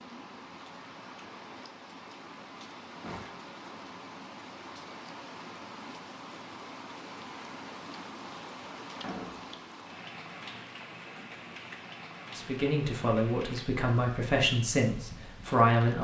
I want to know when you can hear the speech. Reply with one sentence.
You can hear the speech from 12.3 to 15.9 s.